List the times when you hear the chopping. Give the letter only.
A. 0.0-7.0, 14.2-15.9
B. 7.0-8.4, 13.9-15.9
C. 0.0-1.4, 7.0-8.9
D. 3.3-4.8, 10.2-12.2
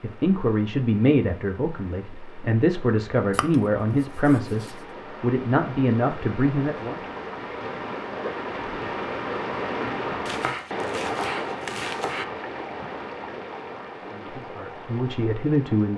D.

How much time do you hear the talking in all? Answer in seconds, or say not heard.
9 s.